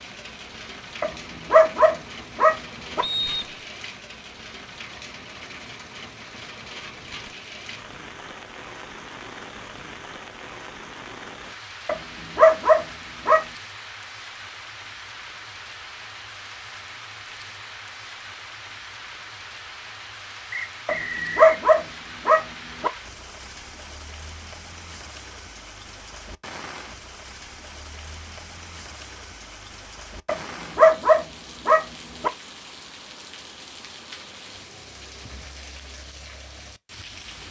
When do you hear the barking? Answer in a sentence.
The barking can be heard from 1.0 to 3.0 s, from 11.8 to 13.4 s, from 20.9 to 22.9 s and from 30.2 to 32.3 s.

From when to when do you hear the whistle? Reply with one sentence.
You can hear the whistle from 3.0 to 3.6 s and from 20.5 to 21.4 s.